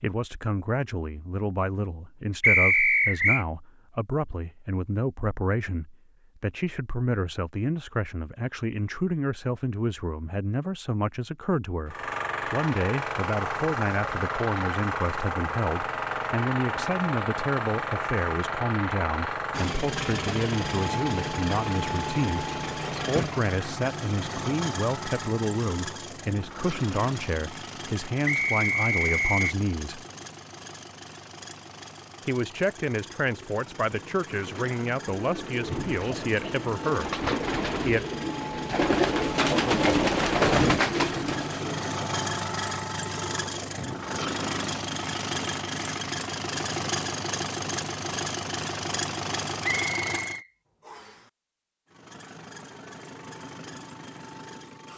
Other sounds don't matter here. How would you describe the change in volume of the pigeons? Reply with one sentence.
The loudness of the pigeons goes up.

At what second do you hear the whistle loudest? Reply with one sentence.
The volume of the whistle peaks at 3 seconds.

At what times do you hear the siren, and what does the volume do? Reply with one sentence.
The siren can't be heard in this clip.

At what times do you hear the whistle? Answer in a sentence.
The whistle can be heard from 2.4 to 3.5 s, from 28.2 to 29.6 s and from 49.6 to 51.1 s.